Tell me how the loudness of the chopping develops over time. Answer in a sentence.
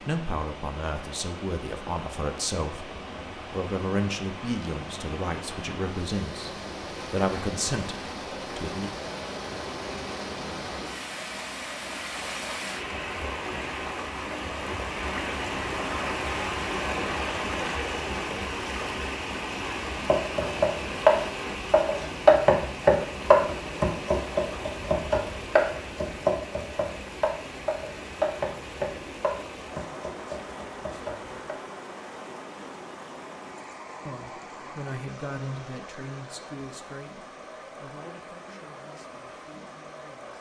The volume of the chopping goes down.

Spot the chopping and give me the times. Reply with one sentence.
You can hear the chopping from 20.1 to 31.6 s.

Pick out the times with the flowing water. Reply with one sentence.
You can hear the flowing water from 0.0 to 40.3 s.